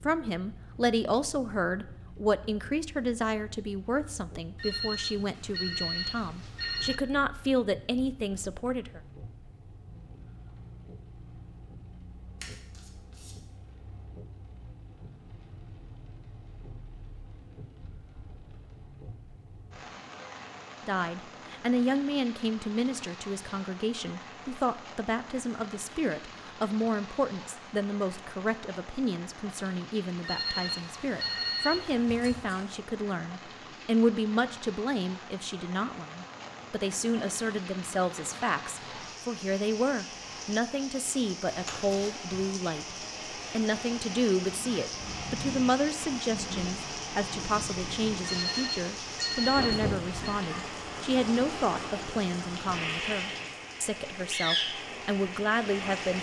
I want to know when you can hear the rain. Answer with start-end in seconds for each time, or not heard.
0.0-56.1.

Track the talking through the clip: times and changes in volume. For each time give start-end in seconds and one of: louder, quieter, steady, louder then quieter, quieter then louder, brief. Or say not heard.
0.0-9.0 quieter then louder
20.9-56.1 steady.